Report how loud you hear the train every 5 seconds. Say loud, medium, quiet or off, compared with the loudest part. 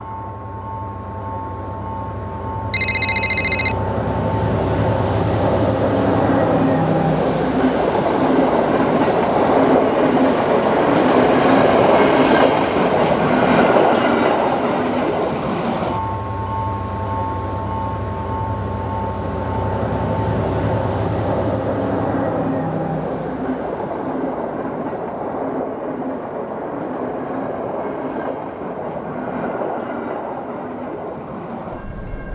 medium, loud, loud, medium, medium, medium, quiet.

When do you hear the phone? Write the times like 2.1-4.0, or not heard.
2.7-3.8.